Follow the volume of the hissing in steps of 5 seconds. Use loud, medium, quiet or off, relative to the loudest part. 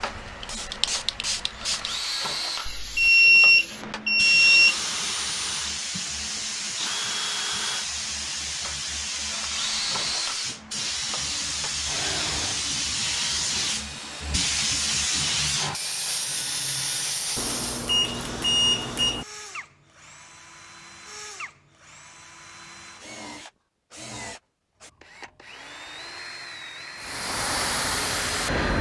medium, loud, loud, loud, off, loud.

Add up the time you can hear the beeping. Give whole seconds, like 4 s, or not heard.
4 s.